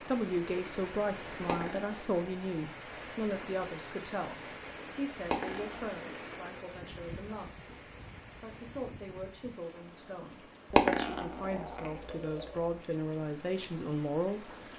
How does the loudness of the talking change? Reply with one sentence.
The volume of the talking goes down, then up.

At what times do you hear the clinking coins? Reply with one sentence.
The clinking coins can be heard from 1.4 to 2.6 s, from 5.2 to 5.9 s and from 10.7 to 12.4 s.